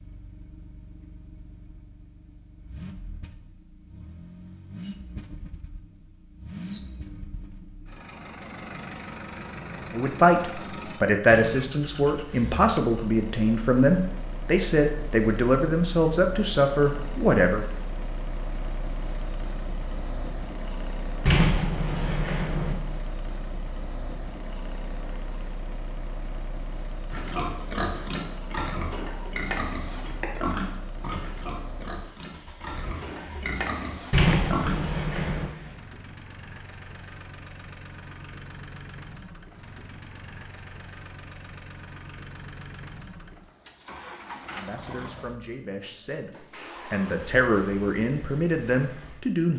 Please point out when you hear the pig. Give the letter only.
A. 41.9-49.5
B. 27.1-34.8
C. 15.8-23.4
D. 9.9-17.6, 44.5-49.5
B.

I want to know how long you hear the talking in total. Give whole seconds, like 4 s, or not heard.
13 s.